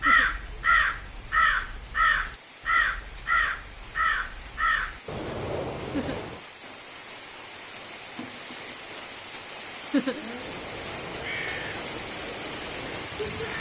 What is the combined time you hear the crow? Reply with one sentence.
You can hear the crow for 10 seconds altogether.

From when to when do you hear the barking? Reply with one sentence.
The barking can't be heard in this clip.